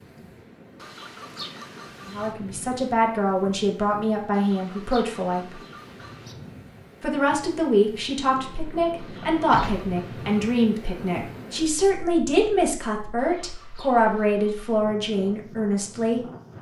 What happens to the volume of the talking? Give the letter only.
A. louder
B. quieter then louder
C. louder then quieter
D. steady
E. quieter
D.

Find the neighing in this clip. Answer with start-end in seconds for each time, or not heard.
not heard.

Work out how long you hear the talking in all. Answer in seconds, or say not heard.
13 s.